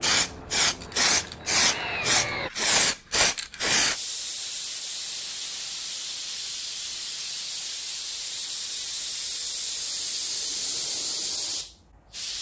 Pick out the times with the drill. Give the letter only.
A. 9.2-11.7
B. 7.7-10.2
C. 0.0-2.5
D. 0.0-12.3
C.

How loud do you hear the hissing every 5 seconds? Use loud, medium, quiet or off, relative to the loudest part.
loud, medium, medium.